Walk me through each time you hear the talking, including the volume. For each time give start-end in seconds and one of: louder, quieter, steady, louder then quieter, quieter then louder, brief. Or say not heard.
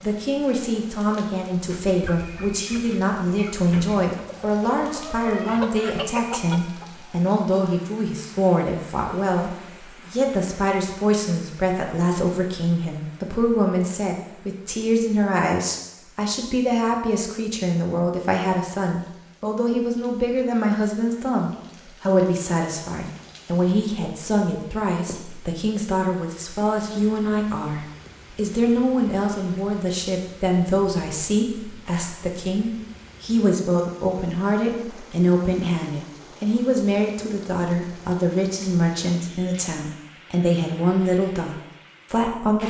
0.0-42.6 steady.